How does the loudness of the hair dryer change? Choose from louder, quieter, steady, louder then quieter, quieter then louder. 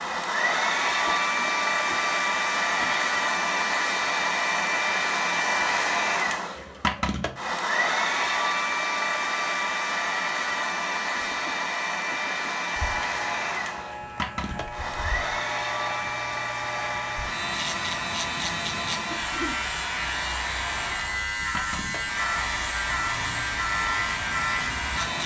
quieter.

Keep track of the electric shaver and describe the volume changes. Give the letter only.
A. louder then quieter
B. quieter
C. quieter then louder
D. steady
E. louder
E.